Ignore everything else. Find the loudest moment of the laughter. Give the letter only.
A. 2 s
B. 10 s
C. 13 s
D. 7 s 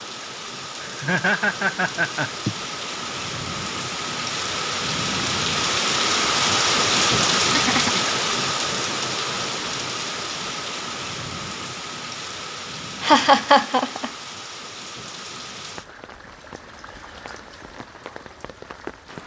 C.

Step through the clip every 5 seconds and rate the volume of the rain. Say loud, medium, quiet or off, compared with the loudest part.
medium, loud, medium, quiet.